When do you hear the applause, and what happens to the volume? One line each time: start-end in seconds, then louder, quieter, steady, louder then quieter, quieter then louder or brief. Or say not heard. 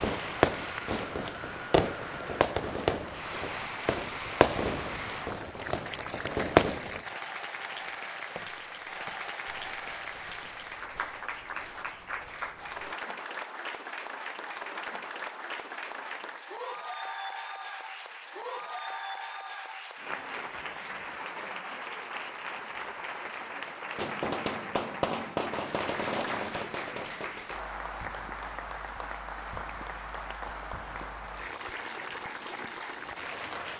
0.0-33.7 steady.